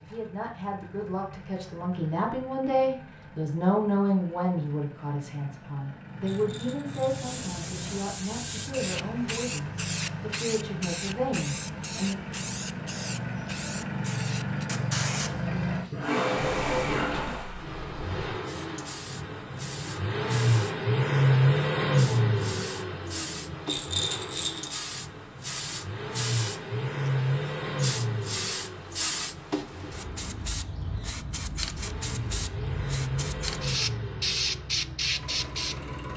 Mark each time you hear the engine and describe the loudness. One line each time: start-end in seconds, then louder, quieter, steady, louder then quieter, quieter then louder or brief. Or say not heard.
0.0-36.1 louder then quieter.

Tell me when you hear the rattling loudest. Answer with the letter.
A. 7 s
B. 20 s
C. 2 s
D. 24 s
D.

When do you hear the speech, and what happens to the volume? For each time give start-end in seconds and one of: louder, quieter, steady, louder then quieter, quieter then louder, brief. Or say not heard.
0.0-12.2 louder then quieter.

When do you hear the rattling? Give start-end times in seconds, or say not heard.
6.2-7.2, 23.6-24.8.